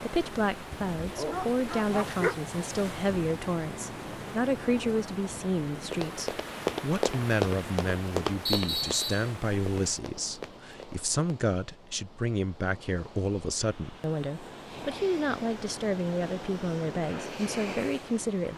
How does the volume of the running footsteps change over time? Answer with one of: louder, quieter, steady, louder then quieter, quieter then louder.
quieter.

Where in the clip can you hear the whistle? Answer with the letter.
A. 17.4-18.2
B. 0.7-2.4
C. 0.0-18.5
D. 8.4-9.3
D.